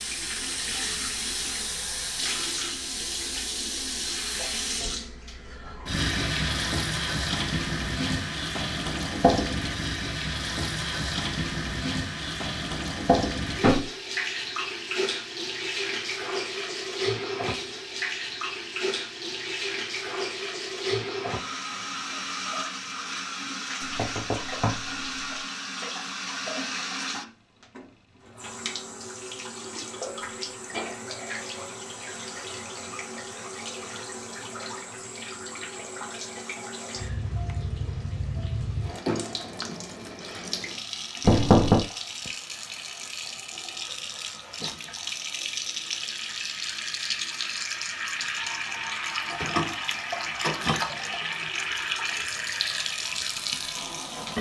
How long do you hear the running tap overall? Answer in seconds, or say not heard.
54 s.